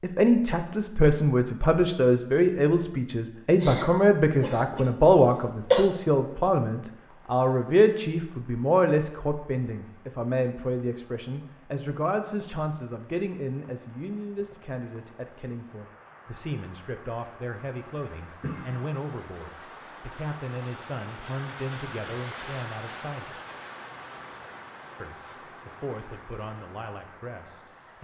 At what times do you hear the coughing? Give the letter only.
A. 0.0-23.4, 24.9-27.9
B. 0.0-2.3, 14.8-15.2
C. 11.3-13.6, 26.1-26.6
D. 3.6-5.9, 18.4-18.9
D.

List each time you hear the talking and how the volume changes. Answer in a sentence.
The talking can be heard from 0.0 to 23.4 s, getting quieter; and briefly from 24.9 to 27.9 s.